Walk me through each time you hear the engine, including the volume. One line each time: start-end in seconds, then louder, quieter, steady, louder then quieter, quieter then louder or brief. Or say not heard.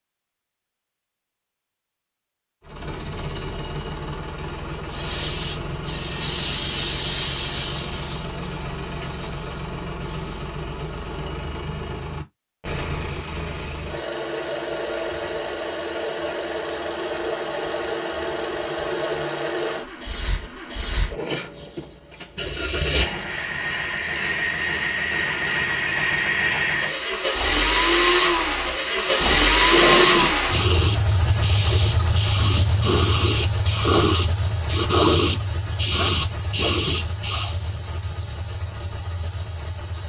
2.6-40.0 louder then quieter.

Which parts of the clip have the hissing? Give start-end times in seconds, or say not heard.
4.8-10.6, 28.9-37.6.